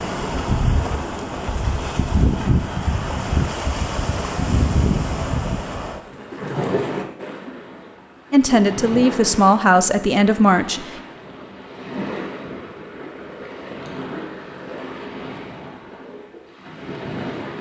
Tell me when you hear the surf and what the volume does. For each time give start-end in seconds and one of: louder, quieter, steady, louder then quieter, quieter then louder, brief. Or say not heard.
0.0-17.5 quieter.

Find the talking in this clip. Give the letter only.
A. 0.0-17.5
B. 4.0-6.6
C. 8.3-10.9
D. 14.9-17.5
C.